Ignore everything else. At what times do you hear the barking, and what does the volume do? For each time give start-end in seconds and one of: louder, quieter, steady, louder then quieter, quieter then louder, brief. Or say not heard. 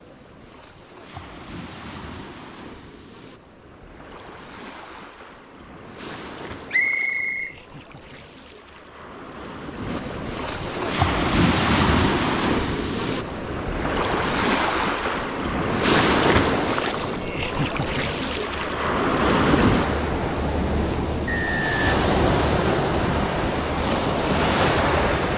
not heard.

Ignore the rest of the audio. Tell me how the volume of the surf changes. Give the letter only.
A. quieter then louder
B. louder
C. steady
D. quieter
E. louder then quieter
B.